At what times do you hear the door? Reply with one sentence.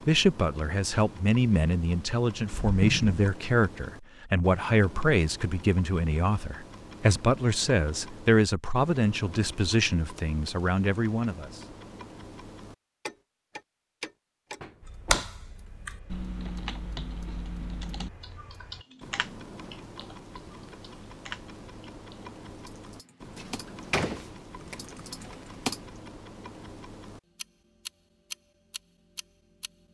You can hear the door from 2.5 to 3.2 s, from 14.6 to 15.2 s and from 23.4 to 25.4 s.